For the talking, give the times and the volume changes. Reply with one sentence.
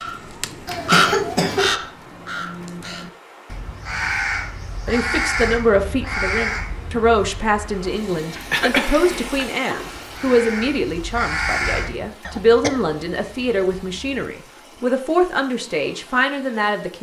The talking can be heard from 4.8 to 16.9 s, at a steady volume.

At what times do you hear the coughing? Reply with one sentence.
The coughing can be heard from 0.7 to 1.8 s, from 8.5 to 9.4 s and from 12.2 to 14.2 s.